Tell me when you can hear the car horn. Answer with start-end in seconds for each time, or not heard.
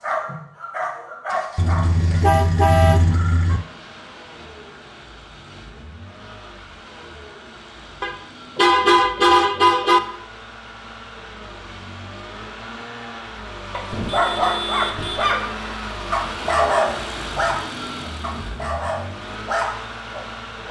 1.6-3.6, 8.0-10.0, 13.9-15.3.